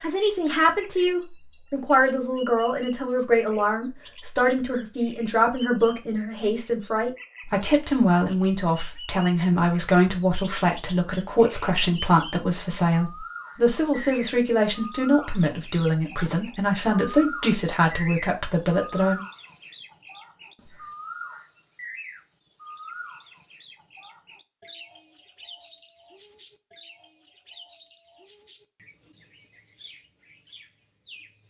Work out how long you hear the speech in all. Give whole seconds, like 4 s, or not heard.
19 s.